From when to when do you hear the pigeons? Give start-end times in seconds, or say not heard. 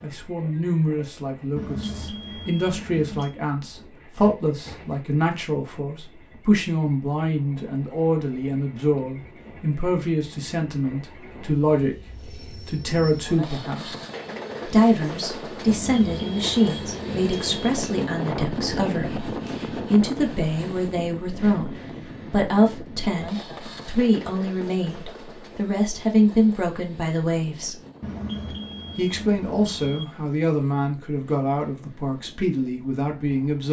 not heard.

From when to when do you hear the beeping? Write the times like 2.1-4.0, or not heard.
1.6-3.3, 15.7-17.7, 28.0-30.1.